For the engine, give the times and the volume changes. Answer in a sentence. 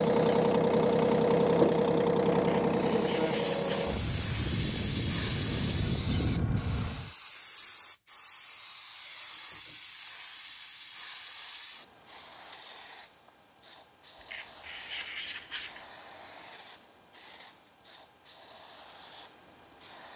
You can hear the engine from 0.0 to 7.1 s, getting quieter.